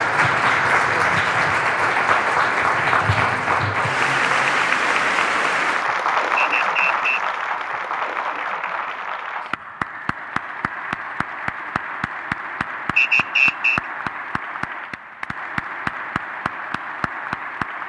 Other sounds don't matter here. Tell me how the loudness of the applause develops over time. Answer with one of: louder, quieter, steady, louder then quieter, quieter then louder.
quieter.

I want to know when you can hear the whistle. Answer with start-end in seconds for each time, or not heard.
6.3-7.3, 12.9-13.8.